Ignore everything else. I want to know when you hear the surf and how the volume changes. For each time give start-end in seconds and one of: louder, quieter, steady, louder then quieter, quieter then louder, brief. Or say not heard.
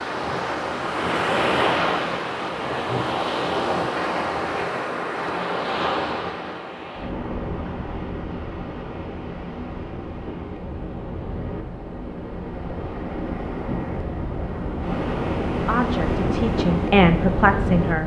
0.0-18.0 quieter then louder.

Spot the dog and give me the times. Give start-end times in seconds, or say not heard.
not heard.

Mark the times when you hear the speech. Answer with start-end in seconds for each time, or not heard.
15.6-18.0.